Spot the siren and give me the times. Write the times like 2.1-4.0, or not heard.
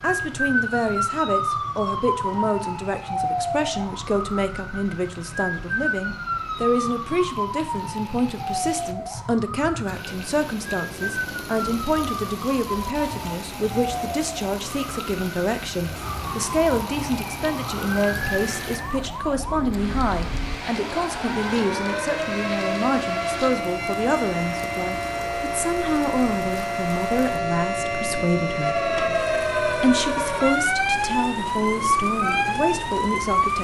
0.0-33.5.